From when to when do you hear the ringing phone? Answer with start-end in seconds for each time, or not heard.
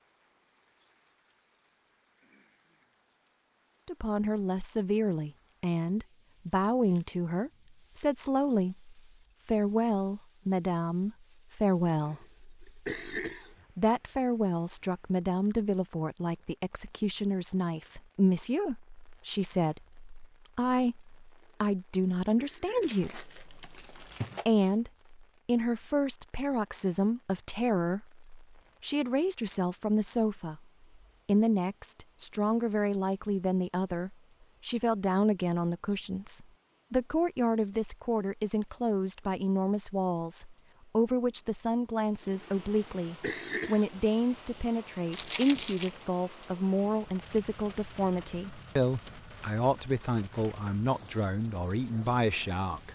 not heard.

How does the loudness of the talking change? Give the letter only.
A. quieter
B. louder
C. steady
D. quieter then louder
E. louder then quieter
C.